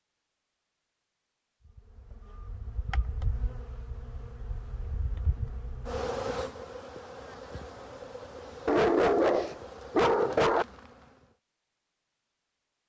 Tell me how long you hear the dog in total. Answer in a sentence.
The dog can be heard for 2 seconds in total.